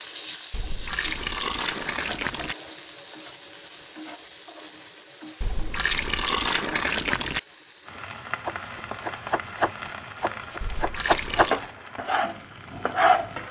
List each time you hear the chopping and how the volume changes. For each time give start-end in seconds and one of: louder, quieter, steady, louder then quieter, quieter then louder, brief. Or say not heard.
8.4-13.3 quieter then louder.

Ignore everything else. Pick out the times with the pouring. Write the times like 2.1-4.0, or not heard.
0.5-2.5, 5.4-7.4, 10.6-11.7.